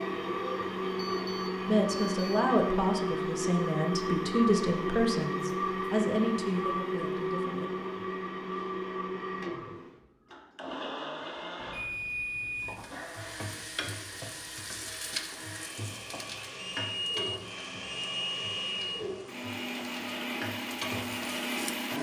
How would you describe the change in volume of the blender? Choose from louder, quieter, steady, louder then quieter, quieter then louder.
quieter then louder.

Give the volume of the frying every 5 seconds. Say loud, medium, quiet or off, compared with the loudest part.
off, off, loud, loud, loud.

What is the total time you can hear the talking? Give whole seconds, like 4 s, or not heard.
6 s.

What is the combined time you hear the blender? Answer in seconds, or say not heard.
22 s.